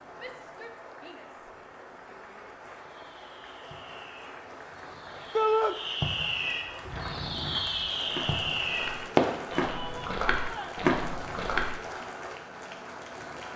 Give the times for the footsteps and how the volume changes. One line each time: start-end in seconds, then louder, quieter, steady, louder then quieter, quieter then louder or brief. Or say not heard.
6.7-11.8 louder.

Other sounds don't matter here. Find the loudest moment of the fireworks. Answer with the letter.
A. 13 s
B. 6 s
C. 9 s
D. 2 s
C.